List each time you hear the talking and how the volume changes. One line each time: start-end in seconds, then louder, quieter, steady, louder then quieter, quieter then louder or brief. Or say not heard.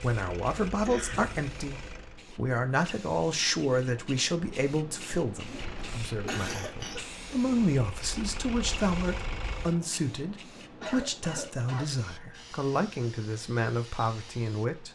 0.0-14.9 steady.